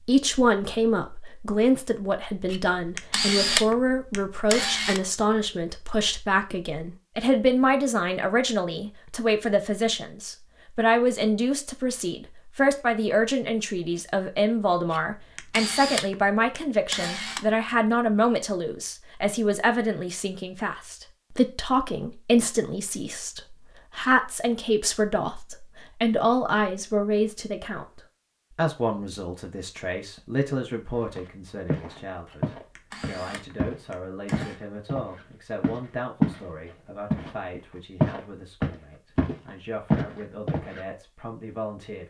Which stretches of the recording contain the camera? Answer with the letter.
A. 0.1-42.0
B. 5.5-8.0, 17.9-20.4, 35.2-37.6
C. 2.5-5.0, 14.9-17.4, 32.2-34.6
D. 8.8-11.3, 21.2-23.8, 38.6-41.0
C.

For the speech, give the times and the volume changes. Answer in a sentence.
You can hear the speech from 0.1 to 42.0 s, getting quieter.